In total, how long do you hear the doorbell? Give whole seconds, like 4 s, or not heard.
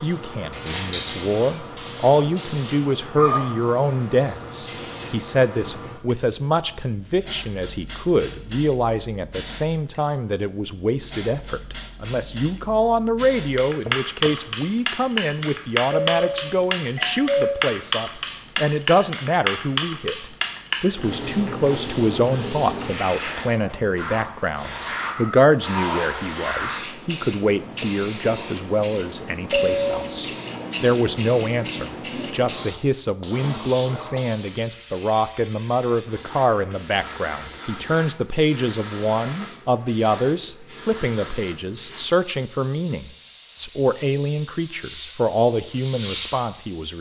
2 s.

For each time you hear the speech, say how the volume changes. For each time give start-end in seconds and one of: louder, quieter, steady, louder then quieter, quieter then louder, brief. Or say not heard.
0.0-46.9 steady.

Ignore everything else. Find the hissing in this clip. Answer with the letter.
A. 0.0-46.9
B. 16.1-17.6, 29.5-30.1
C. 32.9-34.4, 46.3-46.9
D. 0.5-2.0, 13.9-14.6
A.